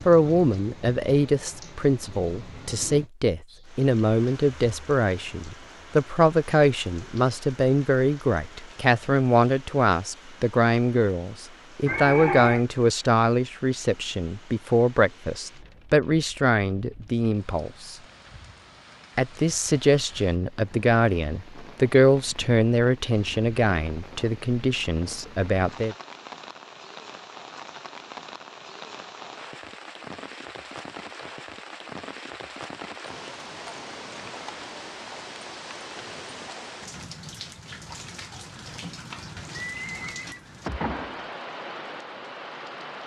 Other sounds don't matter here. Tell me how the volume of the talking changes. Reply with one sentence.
The loudness of the talking stays about the same.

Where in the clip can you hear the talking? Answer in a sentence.
The talking can be heard from 0.1 to 17.9 s and from 19.1 to 25.9 s.